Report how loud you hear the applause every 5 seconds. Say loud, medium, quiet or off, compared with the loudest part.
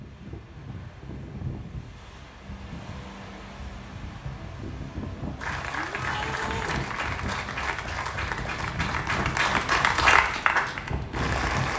off, medium, loud.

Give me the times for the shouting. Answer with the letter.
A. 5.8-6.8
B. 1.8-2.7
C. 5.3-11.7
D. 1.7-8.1
A.